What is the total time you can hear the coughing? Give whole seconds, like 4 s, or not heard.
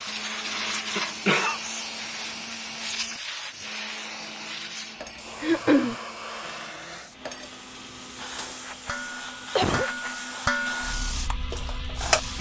2 s.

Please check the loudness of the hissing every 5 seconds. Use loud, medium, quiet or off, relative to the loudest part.
loud, medium, loud.